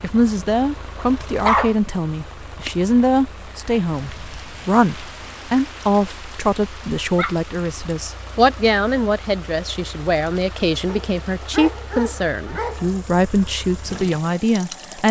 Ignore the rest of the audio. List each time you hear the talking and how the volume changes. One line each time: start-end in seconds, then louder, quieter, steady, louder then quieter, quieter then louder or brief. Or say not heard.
0.0-15.0 steady.